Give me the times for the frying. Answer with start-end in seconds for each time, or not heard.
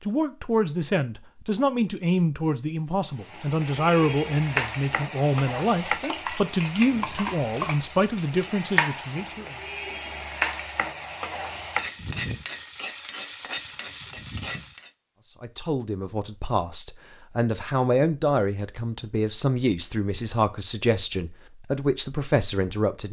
3.2-14.9.